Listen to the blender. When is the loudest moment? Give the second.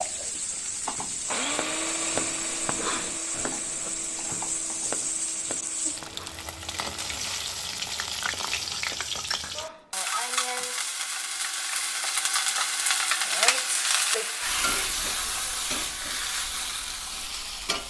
2 s.